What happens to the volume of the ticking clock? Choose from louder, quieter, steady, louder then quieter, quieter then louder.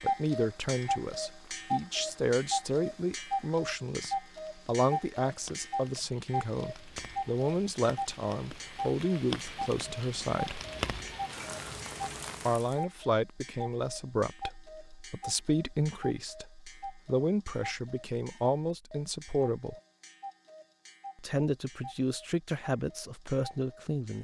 quieter.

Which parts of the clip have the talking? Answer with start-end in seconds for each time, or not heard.
0.0-10.6, 12.4-19.8, 21.1-24.1.